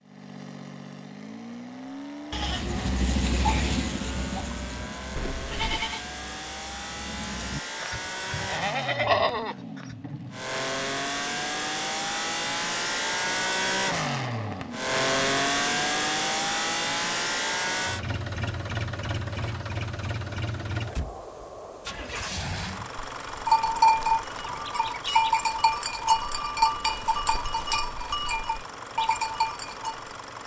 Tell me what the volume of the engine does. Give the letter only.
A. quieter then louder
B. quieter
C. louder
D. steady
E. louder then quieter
E.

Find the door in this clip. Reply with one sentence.
The door can be heard from 5.2 to 5.9 s.